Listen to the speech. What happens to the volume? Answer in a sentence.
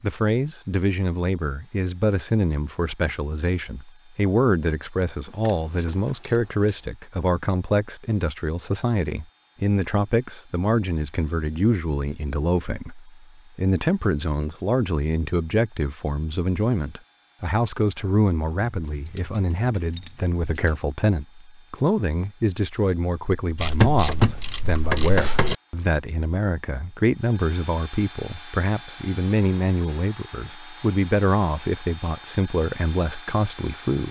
The loudness of the speech stays about the same.